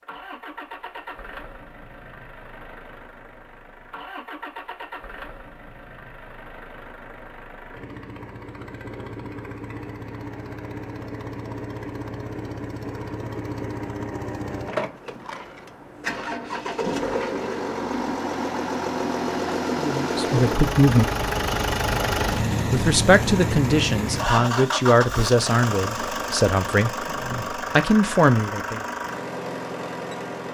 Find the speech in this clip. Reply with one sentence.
The speech can be heard from 19.8 to 21.1 s and from 22.7 to 28.9 s.